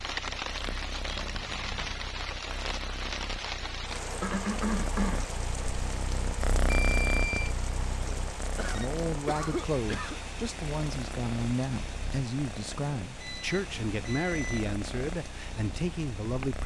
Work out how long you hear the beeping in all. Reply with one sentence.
You can hear the beeping for 3 seconds altogether.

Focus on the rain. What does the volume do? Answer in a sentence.
The loudness of the rain goes down.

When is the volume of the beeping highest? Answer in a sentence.
The volume of the beeping peaks at 7 seconds.